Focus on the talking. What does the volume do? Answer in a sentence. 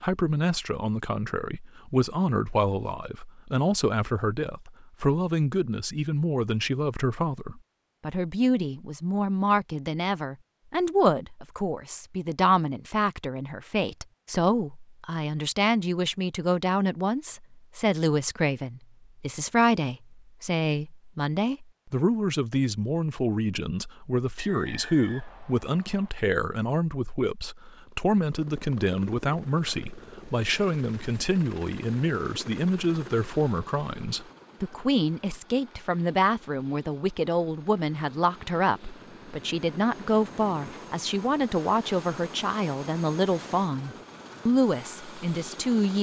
The loudness of the talking stays about the same.